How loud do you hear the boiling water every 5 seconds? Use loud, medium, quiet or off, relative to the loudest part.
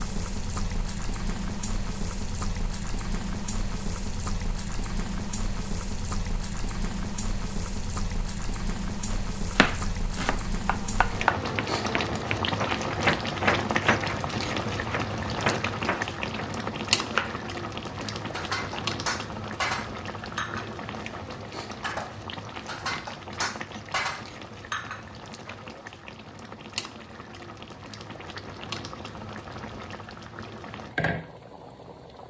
medium, medium, loud, loud, medium, medium, medium.